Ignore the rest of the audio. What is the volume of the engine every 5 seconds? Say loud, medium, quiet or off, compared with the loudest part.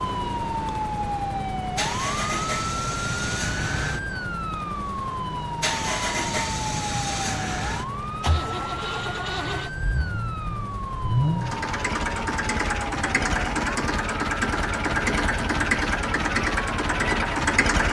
medium, medium, loud, loud.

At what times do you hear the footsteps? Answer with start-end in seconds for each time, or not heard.
not heard.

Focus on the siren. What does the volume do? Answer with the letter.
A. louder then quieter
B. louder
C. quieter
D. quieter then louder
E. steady
C.